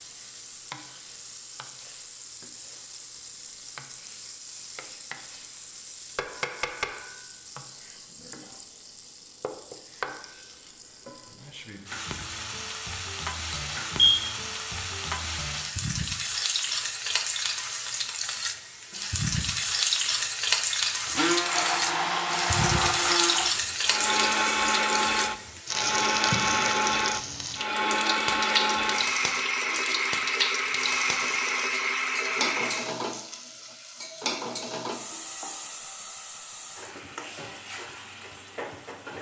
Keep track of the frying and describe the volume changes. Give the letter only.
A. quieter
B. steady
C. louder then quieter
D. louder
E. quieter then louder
C.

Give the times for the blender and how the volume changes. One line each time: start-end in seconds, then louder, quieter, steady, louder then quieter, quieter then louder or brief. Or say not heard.
21.1-32.9 steady.